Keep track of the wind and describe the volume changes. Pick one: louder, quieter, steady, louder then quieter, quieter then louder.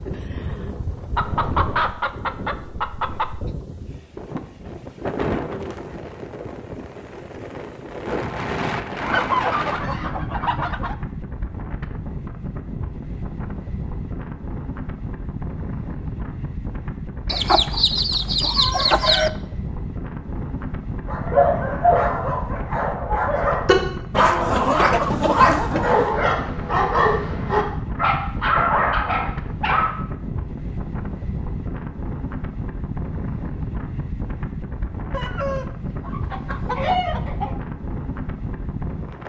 steady.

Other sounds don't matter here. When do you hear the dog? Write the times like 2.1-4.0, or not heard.
21.1-29.9.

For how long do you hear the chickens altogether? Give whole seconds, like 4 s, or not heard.
11 s.